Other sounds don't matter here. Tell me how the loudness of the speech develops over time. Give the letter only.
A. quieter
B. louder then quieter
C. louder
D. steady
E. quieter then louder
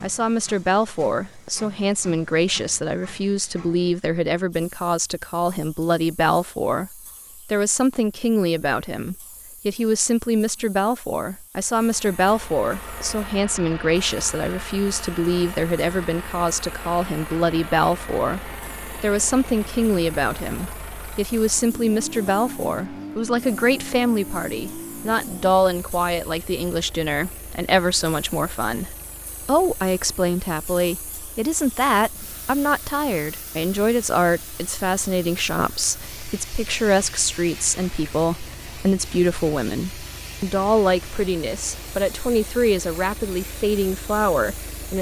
D.